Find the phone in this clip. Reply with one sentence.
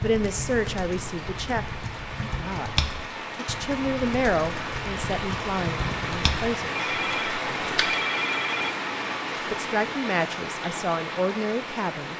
You can hear the phone from 6.8 to 8.8 s.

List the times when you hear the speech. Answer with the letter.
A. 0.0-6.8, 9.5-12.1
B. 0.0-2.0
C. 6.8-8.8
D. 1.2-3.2
A.